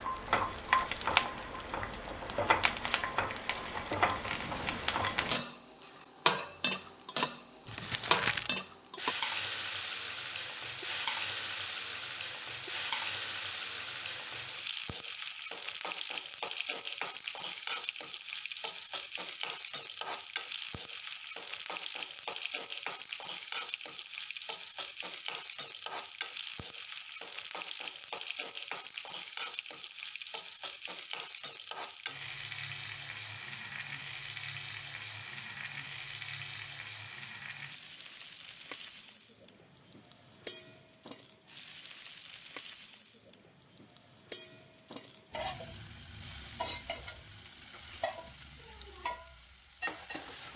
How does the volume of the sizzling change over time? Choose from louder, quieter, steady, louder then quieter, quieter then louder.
quieter.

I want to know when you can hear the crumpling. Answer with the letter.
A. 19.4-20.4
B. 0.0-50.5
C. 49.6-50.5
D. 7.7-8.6
D.